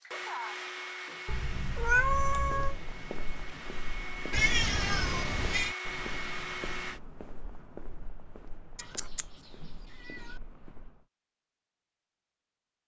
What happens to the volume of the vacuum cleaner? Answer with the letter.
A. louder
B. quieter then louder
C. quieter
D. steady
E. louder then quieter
B.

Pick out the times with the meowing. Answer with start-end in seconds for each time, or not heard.
1.2-2.8, 4.3-5.8, 8.8-10.3.